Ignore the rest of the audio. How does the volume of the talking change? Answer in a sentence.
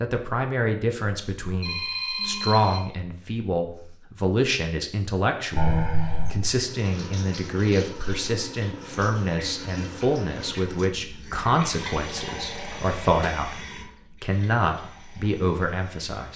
The volume of the talking stays about the same.